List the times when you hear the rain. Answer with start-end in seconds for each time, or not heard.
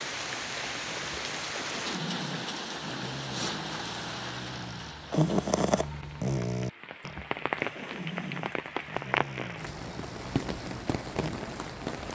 0.0-12.0.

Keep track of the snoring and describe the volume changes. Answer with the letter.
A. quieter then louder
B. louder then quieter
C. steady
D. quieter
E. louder
B.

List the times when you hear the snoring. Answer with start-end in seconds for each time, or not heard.
0.8-11.6.